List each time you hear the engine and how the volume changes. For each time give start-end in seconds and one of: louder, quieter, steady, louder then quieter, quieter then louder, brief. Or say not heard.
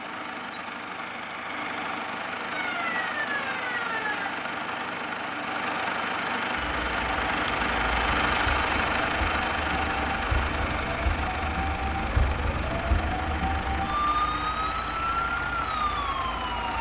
0.0-16.7 louder then quieter.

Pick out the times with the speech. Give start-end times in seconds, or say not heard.
not heard.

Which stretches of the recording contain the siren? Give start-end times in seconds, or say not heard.
2.5-4.3, 6.8-16.7.